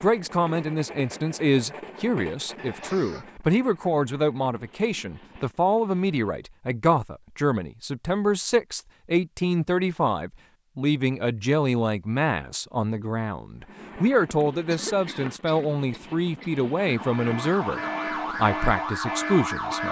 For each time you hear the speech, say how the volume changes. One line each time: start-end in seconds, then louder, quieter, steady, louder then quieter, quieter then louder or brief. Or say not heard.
0.0-19.8 steady.